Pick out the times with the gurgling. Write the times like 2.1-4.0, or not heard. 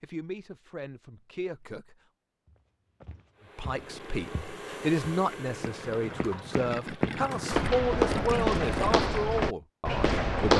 3.7-9.2.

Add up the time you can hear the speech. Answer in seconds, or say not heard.
9 s.